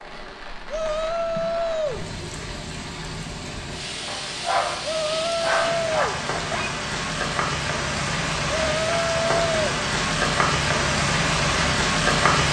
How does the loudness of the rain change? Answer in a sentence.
The volume of the rain goes up.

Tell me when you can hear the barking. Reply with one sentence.
You can hear the barking from 4.0 to 6.8 s.